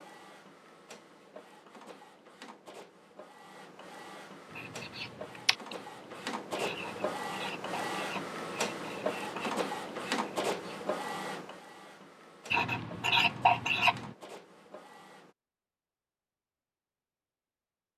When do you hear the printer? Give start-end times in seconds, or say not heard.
0.0-15.3.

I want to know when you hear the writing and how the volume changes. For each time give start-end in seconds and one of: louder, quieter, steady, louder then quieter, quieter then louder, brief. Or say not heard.
4.5-10.8 quieter
12.5-13.9 brief.